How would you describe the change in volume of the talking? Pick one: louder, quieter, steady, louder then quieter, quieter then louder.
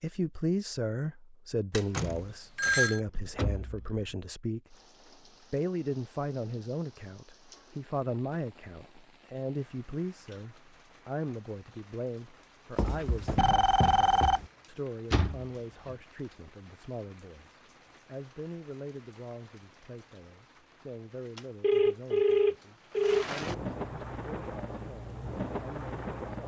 quieter.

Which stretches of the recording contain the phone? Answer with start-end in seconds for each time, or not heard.
1.7-3.0, 12.8-14.5, 21.6-23.2.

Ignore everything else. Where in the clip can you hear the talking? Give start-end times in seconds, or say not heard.
0.0-4.8, 5.5-26.4.